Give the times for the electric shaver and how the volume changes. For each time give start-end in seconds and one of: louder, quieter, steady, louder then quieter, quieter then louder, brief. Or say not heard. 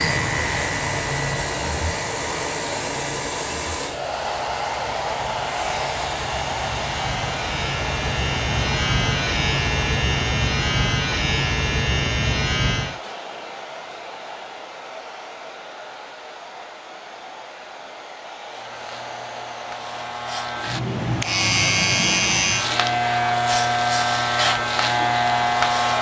0.0-13.0 quieter then louder
18.5-25.9 louder.